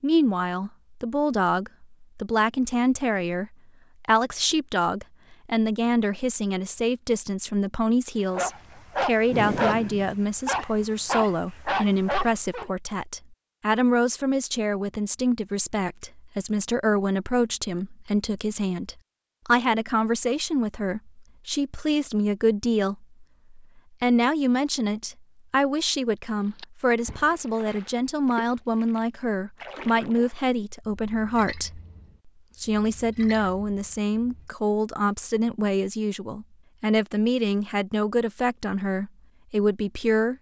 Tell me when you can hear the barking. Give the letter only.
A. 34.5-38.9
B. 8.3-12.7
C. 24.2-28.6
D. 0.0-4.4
B.